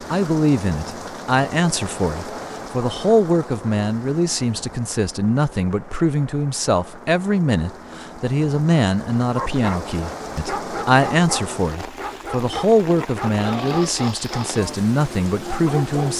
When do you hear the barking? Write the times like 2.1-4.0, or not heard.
9.3-14.8, 15.3-16.1.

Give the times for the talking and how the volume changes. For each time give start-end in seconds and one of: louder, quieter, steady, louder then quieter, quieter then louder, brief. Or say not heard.
0.1-16.1 steady.